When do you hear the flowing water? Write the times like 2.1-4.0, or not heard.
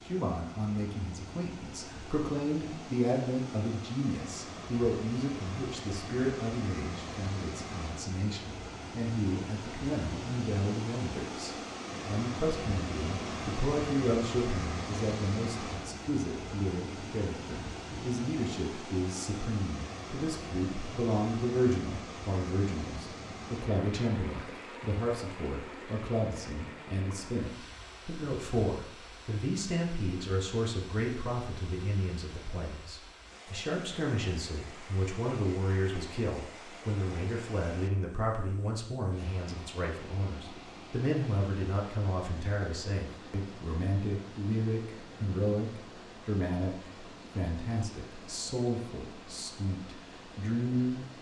0.0-51.1.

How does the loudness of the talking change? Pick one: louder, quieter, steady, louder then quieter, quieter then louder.
steady.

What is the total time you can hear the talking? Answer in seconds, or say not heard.
51 s.